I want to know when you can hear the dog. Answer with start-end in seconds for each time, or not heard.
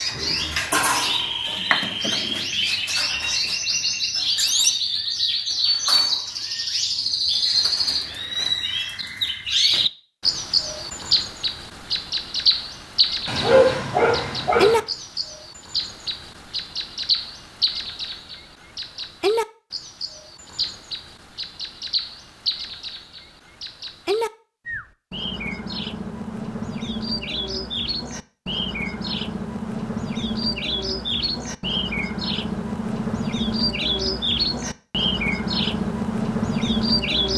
13.2-14.8.